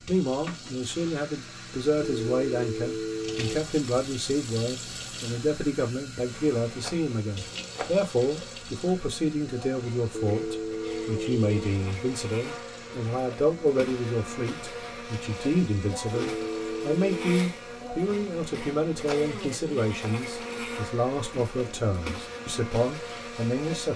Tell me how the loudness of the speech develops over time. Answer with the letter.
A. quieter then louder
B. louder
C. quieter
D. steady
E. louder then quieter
D.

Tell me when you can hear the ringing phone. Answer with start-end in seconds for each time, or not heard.
2.0-3.6, 10.2-11.6, 16.1-17.4.